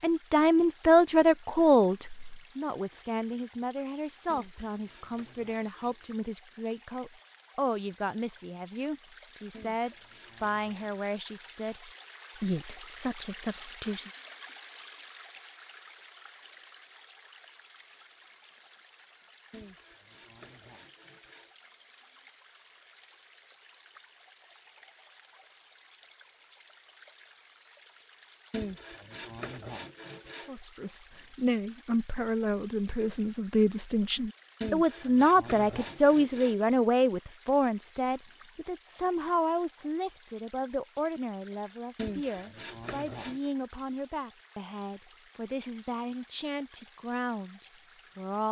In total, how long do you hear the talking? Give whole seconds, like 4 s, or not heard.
32 s.